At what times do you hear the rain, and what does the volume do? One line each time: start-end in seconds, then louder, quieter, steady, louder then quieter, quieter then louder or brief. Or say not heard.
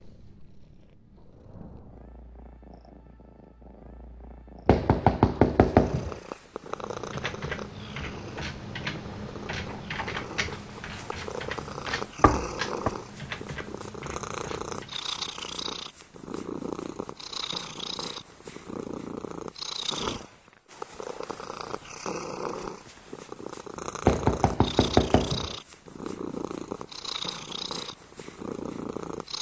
not heard.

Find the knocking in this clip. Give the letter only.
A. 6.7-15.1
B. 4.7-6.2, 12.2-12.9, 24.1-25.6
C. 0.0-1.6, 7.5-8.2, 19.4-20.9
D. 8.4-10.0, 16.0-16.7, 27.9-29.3
B.